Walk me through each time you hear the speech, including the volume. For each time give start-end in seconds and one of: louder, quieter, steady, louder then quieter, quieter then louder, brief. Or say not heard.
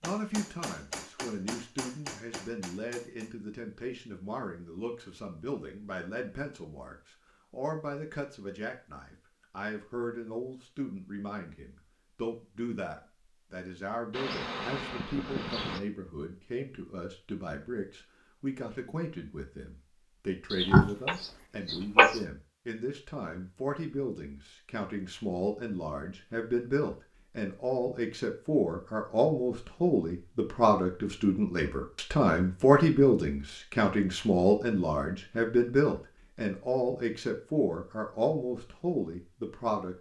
0.0-39.9 louder.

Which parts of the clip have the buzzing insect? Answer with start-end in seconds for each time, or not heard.
14.1-15.8.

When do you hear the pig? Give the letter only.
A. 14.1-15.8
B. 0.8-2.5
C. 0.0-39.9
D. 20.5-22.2
D.